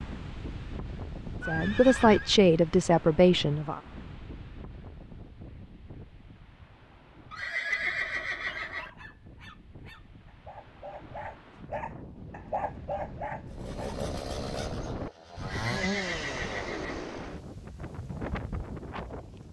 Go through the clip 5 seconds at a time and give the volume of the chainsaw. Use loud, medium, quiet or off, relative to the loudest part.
off, off, loud, loud.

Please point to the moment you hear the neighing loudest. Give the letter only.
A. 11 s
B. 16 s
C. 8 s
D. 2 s
C.